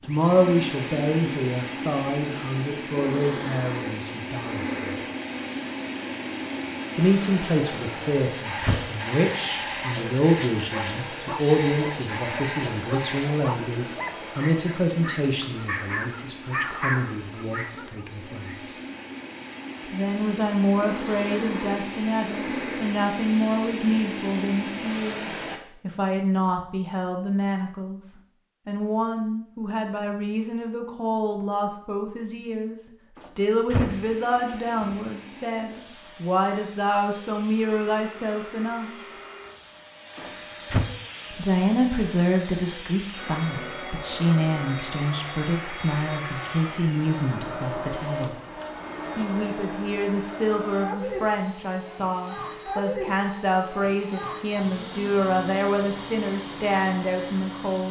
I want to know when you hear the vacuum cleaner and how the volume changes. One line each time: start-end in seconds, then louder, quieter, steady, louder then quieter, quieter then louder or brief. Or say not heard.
0.0-25.6 quieter then louder
33.9-57.8 louder.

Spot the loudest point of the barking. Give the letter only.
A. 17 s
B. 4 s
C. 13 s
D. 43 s
A.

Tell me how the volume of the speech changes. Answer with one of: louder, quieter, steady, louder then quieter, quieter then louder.
steady.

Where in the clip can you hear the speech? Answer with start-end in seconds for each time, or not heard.
0.1-5.0, 7.0-18.8, 19.9-39.1, 41.3-48.4, 49.1-57.8.